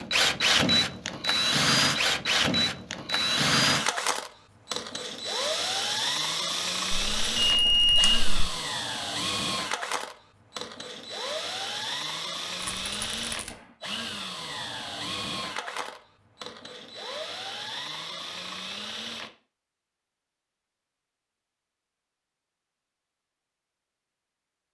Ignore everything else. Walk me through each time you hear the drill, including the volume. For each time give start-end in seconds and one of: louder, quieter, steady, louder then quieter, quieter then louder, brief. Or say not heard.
0.0-19.3 quieter.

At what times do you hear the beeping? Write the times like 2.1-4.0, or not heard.
6.9-8.4.